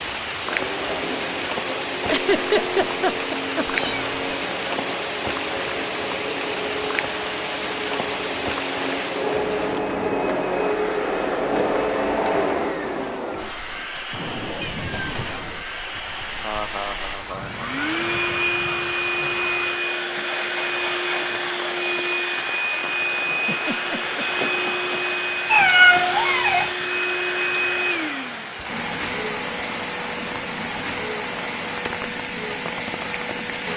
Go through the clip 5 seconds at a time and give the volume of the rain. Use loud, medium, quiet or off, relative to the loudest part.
loud, loud, medium, medium, medium, medium, medium.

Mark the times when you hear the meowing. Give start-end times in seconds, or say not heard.
3.6-4.2, 14.6-16.4, 25.4-26.8.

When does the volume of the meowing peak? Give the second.
26 s.